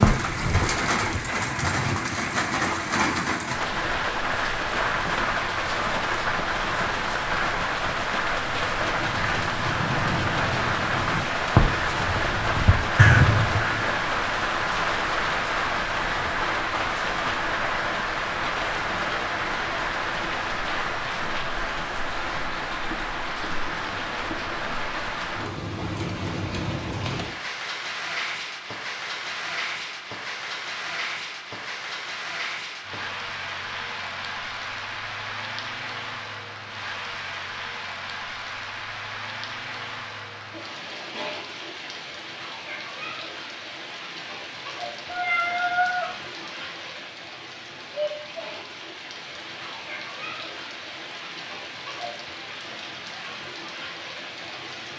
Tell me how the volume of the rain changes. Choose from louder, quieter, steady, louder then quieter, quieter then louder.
quieter.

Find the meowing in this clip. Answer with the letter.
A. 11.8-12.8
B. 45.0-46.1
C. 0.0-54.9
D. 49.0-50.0
B.